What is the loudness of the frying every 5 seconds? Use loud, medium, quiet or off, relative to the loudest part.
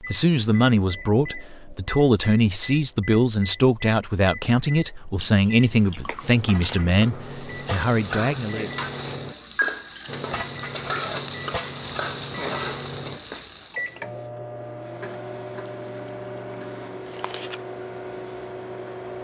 off, loud, loud, off.